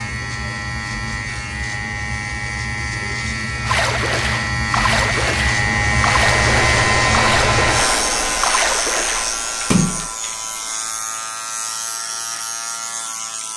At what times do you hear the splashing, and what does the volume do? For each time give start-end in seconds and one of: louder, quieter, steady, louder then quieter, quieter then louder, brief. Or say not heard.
3.6-10.1 steady.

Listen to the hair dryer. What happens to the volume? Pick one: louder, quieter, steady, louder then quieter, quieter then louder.
quieter.